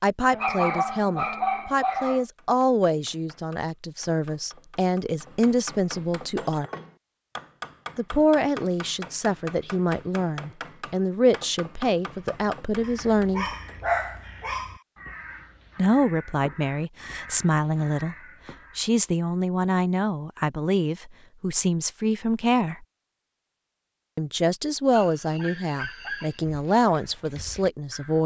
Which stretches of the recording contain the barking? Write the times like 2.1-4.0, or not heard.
0.3-2.2, 12.8-14.8, 24.9-26.4.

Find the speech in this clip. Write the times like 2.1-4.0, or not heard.
0.0-6.7, 8.0-13.5, 15.8-18.1, 18.8-22.9, 24.1-28.2.